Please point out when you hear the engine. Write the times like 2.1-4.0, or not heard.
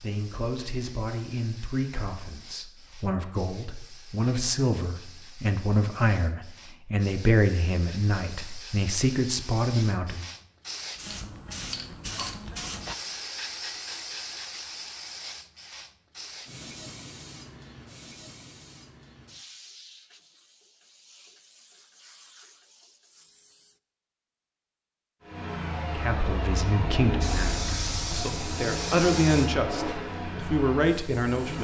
25.2-31.5.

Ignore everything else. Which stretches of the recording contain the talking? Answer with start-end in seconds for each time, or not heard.
0.0-10.2, 25.9-31.5.